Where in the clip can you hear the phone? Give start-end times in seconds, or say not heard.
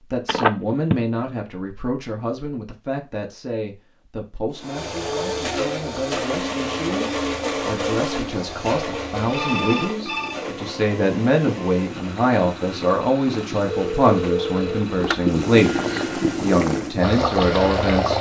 0.2-1.1, 9.3-10.4, 13.7-15.2.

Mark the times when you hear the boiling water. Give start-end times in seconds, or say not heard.
4.8-18.1.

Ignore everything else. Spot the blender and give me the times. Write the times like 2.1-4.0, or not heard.
4.5-17.9.